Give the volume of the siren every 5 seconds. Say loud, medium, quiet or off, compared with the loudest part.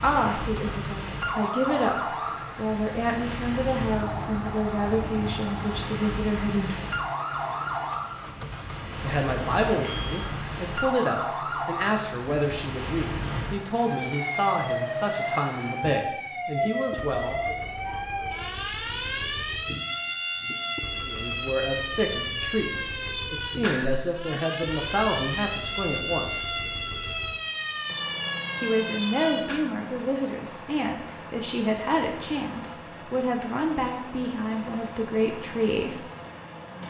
loud, loud, loud, loud, loud, loud, off, off.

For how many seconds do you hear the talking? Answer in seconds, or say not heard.
28 s.